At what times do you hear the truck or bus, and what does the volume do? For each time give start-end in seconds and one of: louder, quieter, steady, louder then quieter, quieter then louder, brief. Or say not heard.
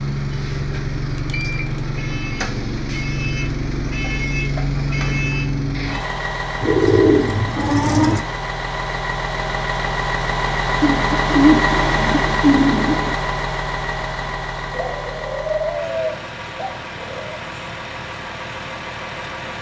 0.0-19.5 quieter.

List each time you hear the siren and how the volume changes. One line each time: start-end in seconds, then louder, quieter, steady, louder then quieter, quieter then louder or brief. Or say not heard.
not heard.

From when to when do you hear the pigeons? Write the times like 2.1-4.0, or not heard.
1.1-1.8, 6.6-8.2, 10.8-13.2, 14.7-17.3.